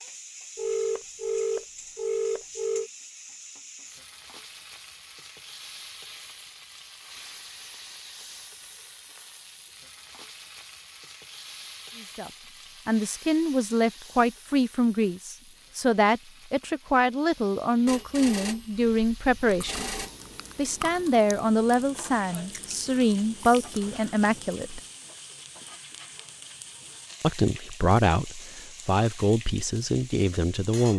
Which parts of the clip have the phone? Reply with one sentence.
You can hear the phone from 0.6 to 2.9 s and from 17.9 to 20.1 s.